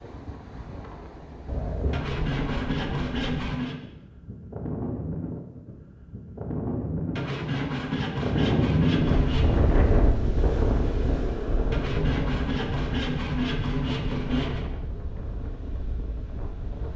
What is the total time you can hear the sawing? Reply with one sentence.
The sawing can be heard for 7 seconds in total.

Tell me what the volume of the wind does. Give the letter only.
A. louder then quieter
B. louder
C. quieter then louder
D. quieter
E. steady
A.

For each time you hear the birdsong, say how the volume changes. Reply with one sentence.
The birdsong can't be heard in this clip.